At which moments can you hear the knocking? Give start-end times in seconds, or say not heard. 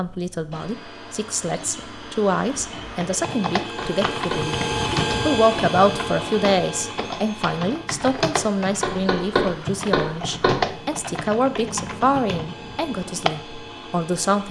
3.8-4.5, 8.8-10.6.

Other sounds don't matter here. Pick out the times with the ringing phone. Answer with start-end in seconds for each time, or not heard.
not heard.